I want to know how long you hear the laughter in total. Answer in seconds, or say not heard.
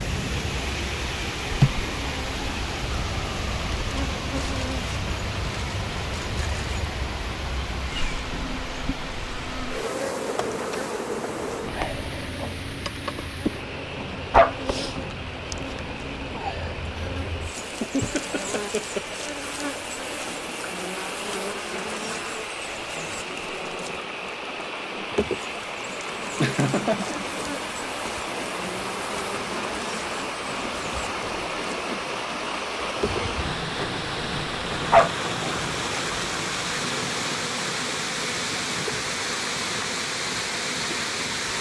3 s.